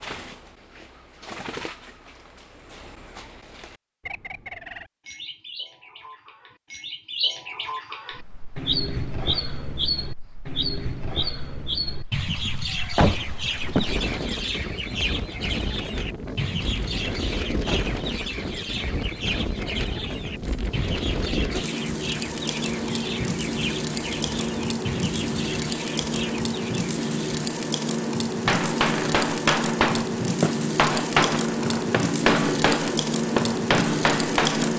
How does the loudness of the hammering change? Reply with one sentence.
The volume of the hammering stays about the same.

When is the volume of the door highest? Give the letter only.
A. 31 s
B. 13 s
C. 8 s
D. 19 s
B.